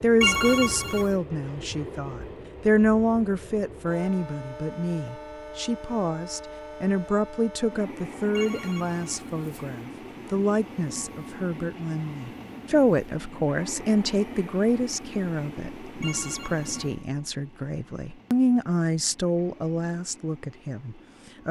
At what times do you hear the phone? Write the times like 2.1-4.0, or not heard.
0.2-1.1, 8.3-9.7, 16.0-16.9.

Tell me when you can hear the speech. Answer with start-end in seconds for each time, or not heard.
0.0-21.4.